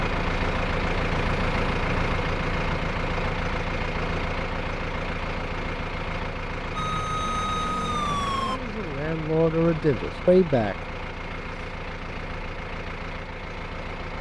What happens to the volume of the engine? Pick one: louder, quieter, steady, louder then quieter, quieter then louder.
quieter.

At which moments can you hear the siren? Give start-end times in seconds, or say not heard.
6.8-8.6.